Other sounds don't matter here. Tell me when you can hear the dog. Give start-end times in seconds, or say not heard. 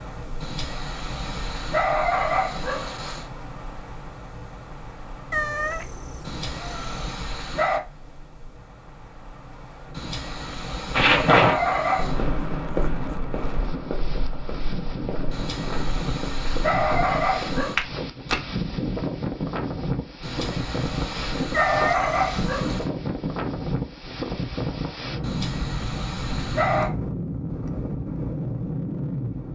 0.4-3.2, 6.2-7.8, 9.9-12.2, 15.3-17.8, 20.2-22.9, 25.2-26.9.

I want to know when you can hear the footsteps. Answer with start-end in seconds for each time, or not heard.
10.9-18.4.